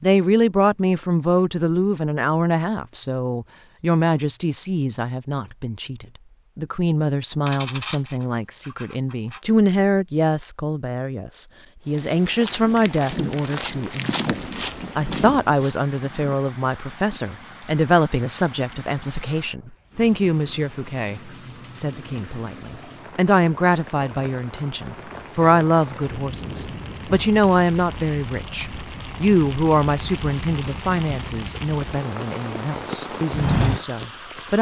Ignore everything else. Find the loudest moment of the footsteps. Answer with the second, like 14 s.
34 s.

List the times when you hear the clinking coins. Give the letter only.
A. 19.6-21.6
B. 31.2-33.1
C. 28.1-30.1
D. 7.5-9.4
D.